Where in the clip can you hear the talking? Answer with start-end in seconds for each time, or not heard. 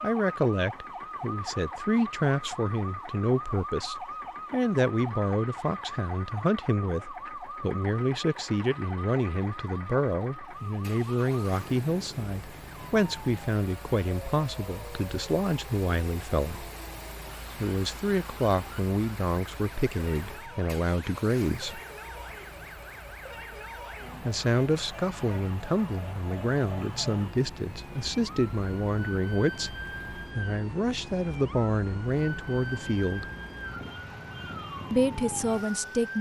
0.0-16.7, 17.6-21.8, 24.2-33.2, 34.9-36.1.